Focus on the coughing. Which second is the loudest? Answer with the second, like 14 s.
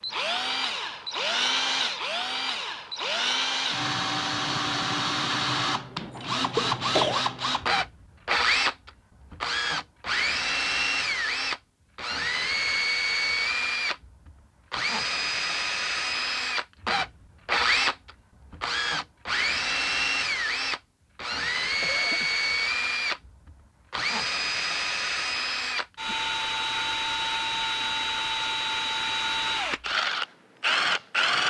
7 s.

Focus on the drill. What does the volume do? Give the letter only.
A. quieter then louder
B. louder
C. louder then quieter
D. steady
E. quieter
D.